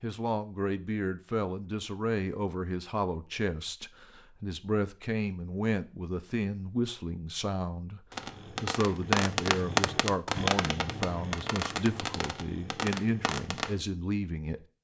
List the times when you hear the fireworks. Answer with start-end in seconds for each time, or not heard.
8.1-13.8.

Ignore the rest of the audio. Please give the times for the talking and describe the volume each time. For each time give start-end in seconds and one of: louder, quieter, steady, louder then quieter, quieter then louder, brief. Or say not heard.
0.0-14.6 steady.